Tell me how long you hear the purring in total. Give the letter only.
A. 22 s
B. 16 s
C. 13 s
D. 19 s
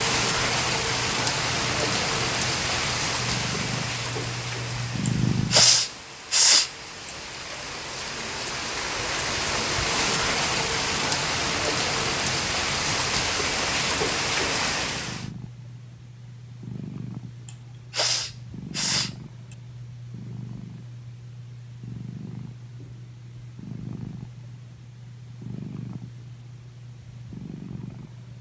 D.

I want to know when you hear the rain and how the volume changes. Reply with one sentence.
You can hear the rain from 0.0 to 15.3 s, getting quieter then louder.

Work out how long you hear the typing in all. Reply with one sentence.
The typing can't be heard in this clip.